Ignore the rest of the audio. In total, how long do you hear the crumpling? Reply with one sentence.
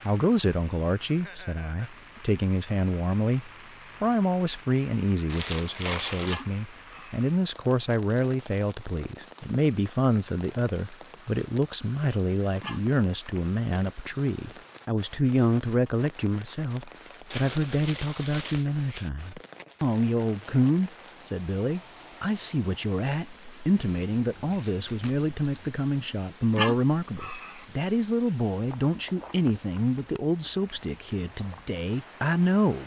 You can hear the crumpling for 5 seconds altogether.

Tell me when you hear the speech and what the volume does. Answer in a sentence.
You can hear the speech from 0.0 to 32.8 s, at a steady volume.